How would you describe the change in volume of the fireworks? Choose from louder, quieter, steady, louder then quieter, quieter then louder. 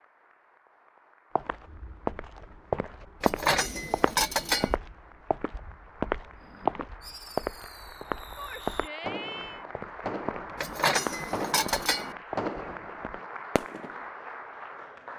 louder.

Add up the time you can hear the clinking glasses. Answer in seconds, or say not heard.
3 s.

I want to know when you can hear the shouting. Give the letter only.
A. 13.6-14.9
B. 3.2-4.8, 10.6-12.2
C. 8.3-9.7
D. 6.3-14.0
C.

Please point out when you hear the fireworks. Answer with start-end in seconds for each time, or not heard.
6.3-14.0.